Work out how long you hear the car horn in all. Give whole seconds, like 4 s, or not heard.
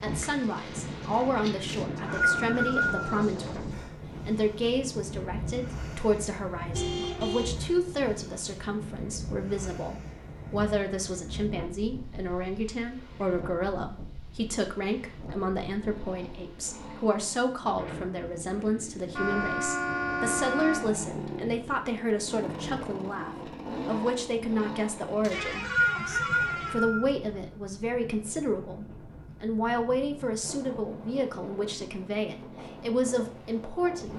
4 s.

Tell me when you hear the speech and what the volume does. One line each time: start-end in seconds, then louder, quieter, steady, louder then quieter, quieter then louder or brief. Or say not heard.
0.0-34.1 steady.